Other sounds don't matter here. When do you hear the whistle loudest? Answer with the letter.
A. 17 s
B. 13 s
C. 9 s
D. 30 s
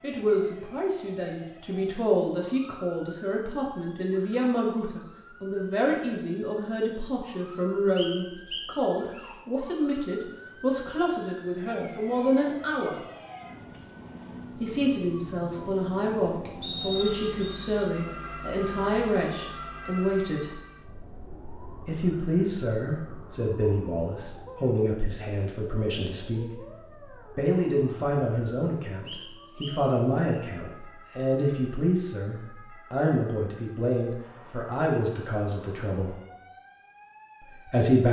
A.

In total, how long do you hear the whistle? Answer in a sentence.
The whistle can be heard for 4 seconds in total.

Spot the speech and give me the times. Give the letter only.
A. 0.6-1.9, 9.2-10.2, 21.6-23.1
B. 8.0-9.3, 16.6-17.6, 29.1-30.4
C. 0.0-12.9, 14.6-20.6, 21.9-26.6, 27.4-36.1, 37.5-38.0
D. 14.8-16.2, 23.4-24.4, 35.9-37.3
C.